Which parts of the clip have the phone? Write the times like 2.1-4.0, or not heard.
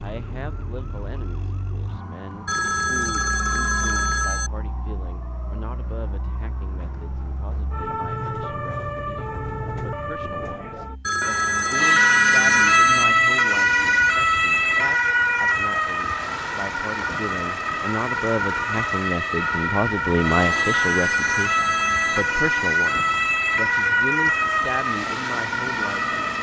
2.5-4.5, 11.0-13.1, 20.5-22.3.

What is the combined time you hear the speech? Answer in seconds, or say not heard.
26 s.